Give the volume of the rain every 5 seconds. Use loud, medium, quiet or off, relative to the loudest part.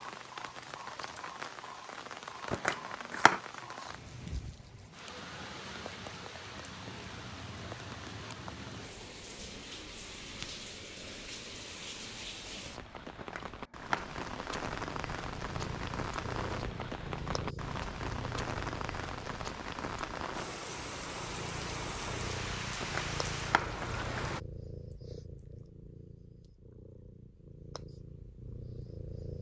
medium, medium, loud, loud, loud, off.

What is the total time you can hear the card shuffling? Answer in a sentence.
The card shuffling can be heard for 3 seconds in total.